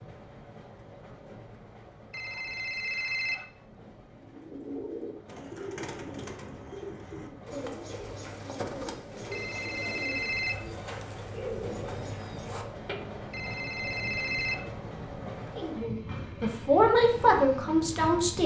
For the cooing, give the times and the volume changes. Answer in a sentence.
The cooing can be heard from 4.2 to 13.1 s, at a steady volume.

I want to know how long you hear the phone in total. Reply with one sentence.
You can hear the phone for 4 seconds altogether.